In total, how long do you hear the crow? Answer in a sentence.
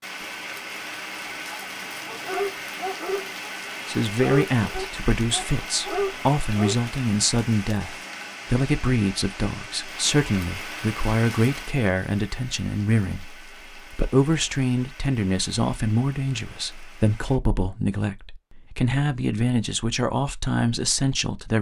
The crow can't be heard in this clip.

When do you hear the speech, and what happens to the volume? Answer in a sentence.
The speech can be heard from 3.9 to 21.5 s, at a steady volume.